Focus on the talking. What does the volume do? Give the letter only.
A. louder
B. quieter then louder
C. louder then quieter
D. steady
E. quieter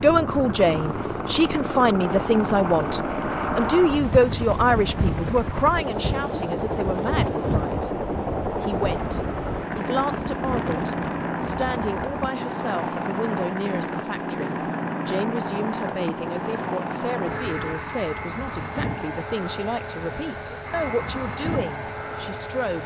E.